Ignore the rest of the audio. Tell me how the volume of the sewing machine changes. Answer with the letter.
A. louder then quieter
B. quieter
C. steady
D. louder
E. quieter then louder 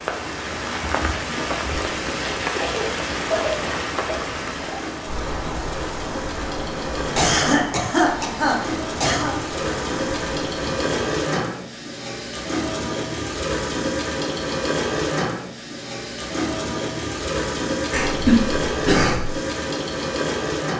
D.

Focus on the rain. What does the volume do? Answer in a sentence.
The loudness of the rain goes down.